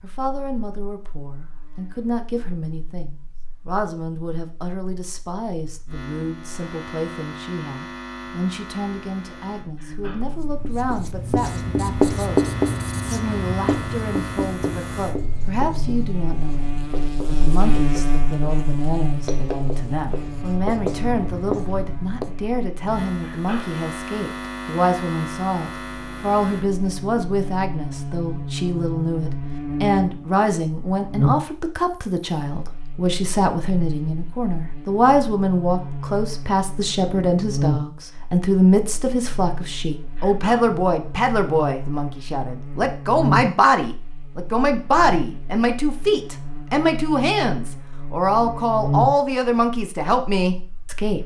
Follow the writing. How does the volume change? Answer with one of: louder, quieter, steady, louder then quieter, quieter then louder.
quieter then louder.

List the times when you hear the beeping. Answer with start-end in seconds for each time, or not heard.
not heard.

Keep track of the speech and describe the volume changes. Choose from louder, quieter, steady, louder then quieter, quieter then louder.
louder.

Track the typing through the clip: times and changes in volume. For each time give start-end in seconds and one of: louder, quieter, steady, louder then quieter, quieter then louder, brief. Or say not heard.
not heard.